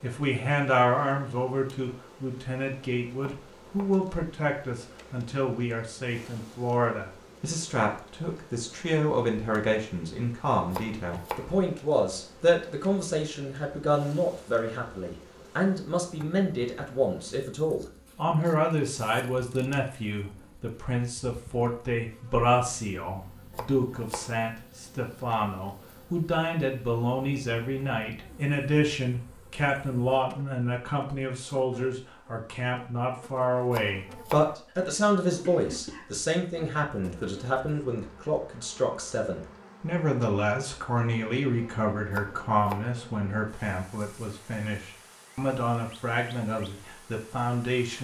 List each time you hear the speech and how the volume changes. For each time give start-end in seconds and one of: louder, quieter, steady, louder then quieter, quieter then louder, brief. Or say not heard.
0.0-47.9 steady.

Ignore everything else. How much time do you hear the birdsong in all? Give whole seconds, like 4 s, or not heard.
not heard.